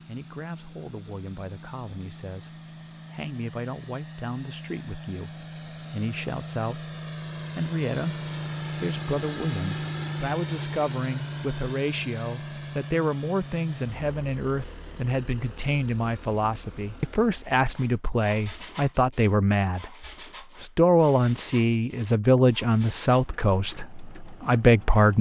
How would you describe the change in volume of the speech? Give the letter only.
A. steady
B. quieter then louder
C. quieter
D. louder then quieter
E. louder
E.